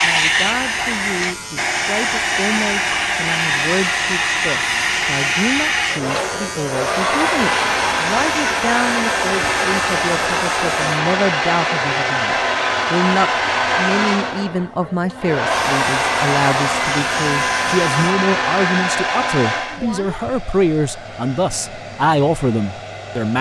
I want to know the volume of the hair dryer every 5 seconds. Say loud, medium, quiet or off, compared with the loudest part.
loud, loud, loud, loud, quiet.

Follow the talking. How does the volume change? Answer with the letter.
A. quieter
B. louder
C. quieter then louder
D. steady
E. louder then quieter
B.